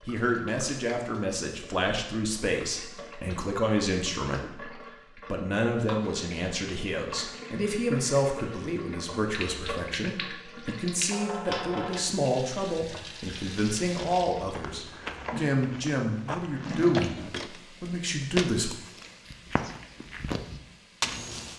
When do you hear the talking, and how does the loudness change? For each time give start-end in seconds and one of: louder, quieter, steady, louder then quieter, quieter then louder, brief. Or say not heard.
0.0-18.7 steady.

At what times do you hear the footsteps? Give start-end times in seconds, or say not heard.
13.9-21.5.